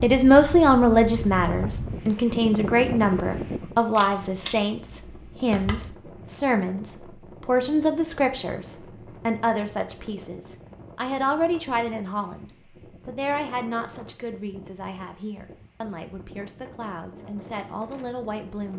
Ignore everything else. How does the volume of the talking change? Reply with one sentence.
The loudness of the talking goes down.